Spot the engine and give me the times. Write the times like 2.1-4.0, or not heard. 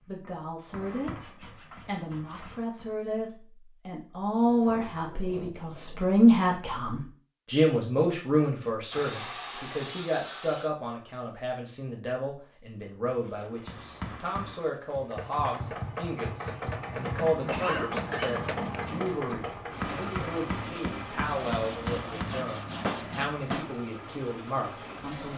14.9-25.3.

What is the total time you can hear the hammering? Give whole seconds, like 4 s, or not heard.
13 s.